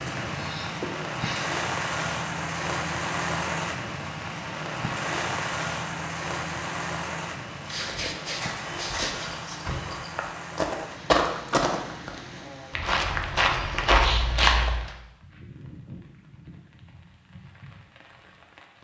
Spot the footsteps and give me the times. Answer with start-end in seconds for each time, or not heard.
7.5-14.9.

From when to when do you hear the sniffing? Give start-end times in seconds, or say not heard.
0.3-1.6, 7.7-9.3, 14.0-14.6.